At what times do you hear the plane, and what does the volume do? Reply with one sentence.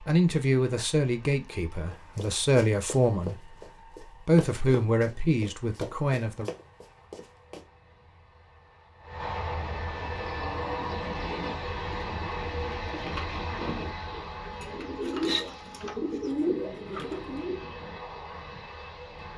You can hear the plane from 0.0 to 19.3 s, getting louder then quieter.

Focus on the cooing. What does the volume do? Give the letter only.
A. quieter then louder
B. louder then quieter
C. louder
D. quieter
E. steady
C.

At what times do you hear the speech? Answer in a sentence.
You can hear the speech from 0.0 to 6.5 s.